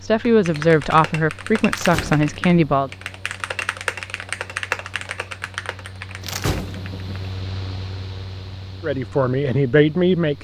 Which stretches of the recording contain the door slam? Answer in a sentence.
The door slam can be heard from 1.7 to 2.5 s and from 6.2 to 7.2 s.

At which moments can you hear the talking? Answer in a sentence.
The talking can be heard from 0.0 to 2.9 s and from 8.8 to 10.4 s.